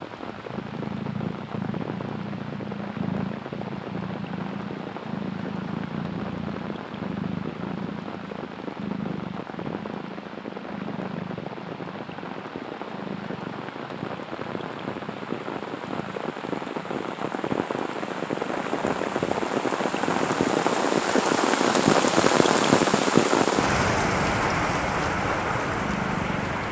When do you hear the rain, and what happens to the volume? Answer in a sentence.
The rain can be heard from 0.0 to 26.6 s, getting louder.